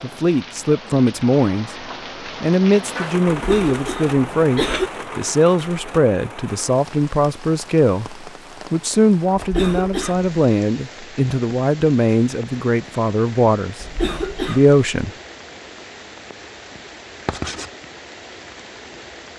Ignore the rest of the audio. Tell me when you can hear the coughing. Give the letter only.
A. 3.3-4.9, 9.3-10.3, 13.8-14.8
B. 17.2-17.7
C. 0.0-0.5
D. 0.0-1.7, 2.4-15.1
A.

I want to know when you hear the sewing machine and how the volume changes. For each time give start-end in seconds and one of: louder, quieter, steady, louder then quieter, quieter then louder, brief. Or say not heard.
not heard.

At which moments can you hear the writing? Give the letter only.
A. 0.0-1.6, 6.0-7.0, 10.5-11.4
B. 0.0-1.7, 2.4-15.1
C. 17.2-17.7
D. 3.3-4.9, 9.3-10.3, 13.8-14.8
C.